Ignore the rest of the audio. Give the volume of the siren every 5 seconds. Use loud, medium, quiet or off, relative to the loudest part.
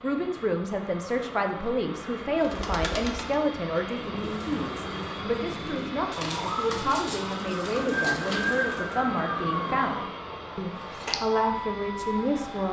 off, loud, medium.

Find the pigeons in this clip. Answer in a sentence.
You can hear the pigeons from 2.3 to 9.0 s.